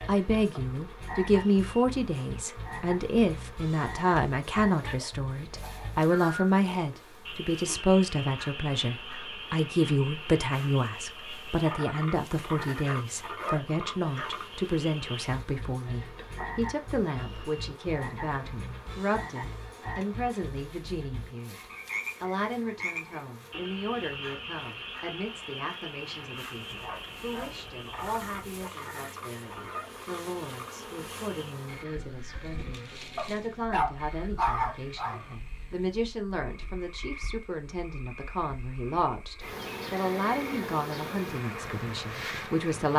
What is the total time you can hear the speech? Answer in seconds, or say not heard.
43 s.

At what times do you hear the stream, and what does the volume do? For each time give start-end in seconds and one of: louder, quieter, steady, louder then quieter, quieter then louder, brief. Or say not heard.
not heard.